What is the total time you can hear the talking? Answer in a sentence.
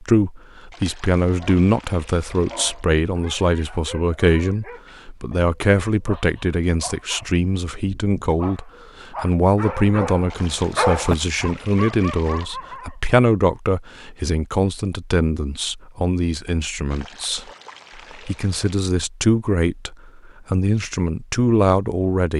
The talking can be heard for 22 seconds in total.